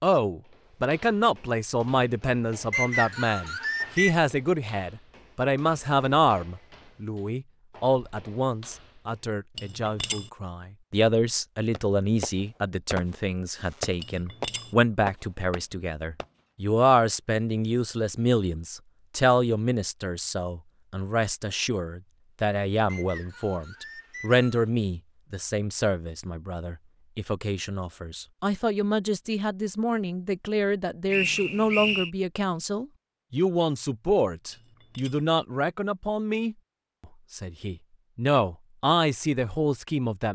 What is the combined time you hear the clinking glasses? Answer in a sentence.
You can hear the clinking glasses for 2 seconds altogether.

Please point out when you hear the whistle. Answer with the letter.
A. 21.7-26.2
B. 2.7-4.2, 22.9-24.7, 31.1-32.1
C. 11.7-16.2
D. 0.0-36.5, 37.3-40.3
B.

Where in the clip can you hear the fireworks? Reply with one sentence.
You can hear the fireworks from 11.7 to 16.2 s.